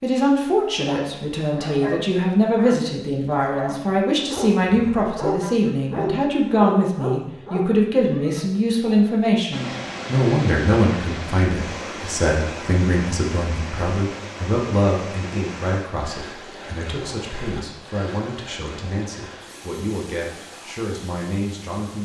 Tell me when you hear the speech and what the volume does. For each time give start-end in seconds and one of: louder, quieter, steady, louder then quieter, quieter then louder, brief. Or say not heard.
0.0-22.0 quieter.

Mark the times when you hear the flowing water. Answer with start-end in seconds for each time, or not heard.
9.5-22.0.